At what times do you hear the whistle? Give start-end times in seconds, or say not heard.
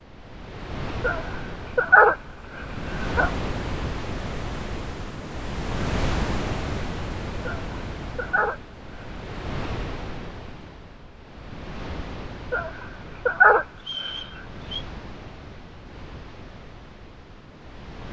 13.8-14.8.